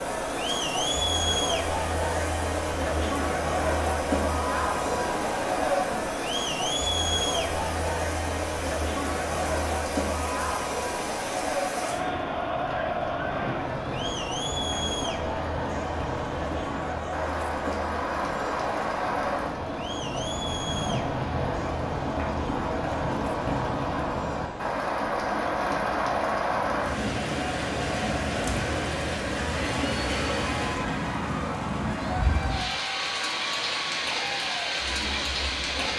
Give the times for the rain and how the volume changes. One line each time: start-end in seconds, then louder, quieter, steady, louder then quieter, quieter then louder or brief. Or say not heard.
0.0-35.9 louder.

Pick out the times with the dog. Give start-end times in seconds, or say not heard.
not heard.